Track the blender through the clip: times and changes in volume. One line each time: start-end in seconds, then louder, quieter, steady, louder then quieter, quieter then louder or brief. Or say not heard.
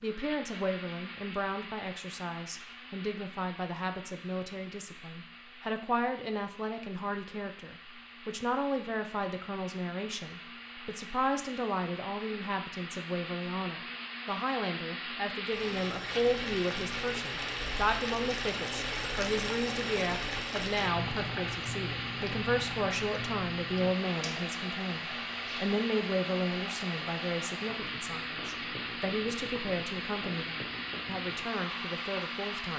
0.0-32.7 louder.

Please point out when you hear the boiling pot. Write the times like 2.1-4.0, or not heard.
15.4-32.7.